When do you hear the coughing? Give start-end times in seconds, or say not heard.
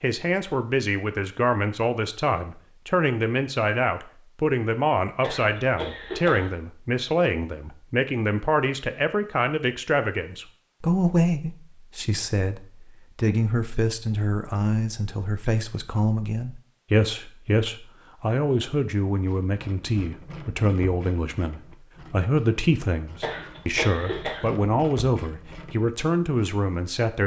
5.2-6.5, 23.2-24.5.